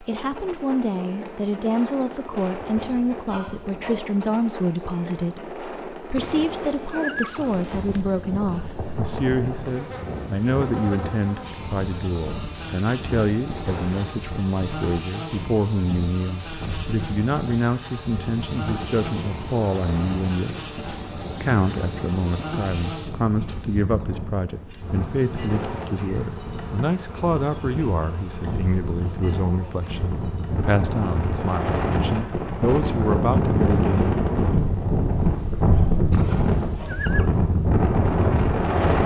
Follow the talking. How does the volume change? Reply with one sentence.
The loudness of the talking stays about the same.